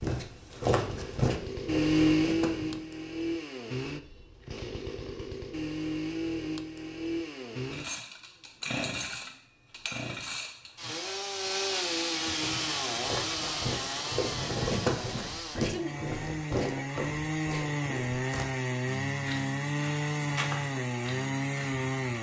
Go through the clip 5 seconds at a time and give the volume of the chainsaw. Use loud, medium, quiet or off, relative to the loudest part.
loud, medium, loud, loud, loud.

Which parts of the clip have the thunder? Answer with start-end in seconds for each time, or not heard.
12.4-15.2.